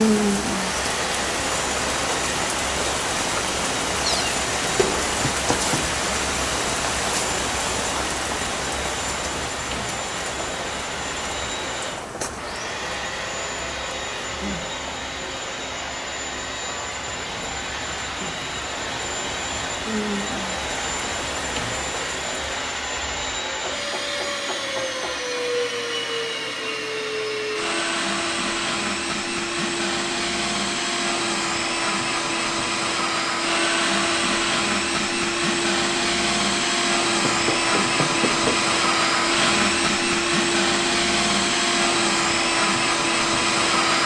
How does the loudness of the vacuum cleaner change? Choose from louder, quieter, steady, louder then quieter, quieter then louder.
louder.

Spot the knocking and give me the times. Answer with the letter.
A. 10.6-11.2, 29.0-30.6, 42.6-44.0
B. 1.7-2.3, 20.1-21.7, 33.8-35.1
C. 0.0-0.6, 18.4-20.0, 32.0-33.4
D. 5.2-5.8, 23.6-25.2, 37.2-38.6
D.